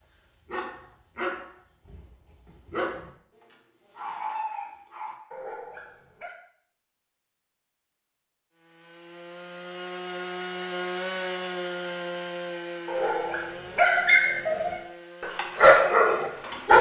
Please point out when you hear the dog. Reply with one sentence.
The dog can be heard from 0.0 to 6.3 s and from 12.8 to 16.7 s.